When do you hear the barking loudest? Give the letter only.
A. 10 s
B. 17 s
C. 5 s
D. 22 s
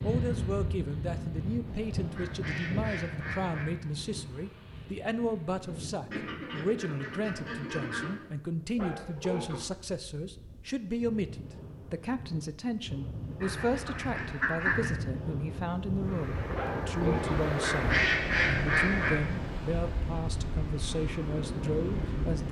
B.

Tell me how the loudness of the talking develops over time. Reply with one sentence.
The loudness of the talking stays about the same.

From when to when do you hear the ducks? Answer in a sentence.
The ducks can be heard from 1.6 to 3.6 s, from 6.1 to 8.2 s, from 13.4 to 14.9 s and from 17.1 to 19.1 s.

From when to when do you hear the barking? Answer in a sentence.
The barking can be heard from 8.8 to 9.6 s and from 16.5 to 17.4 s.